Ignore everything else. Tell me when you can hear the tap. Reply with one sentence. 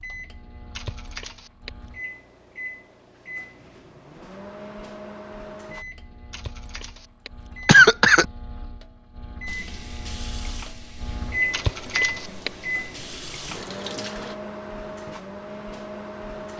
You can hear the tap from 9.4 to 14.3 s.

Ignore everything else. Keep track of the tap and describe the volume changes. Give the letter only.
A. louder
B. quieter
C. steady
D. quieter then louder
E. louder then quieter
D.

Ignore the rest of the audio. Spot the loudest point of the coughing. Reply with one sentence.
The loudest moment of the coughing is at 8 seconds.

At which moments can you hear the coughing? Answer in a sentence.
You can hear the coughing from 0.8 to 1.7 s, from 6.3 to 8.2 s and from 11.5 to 12.5 s.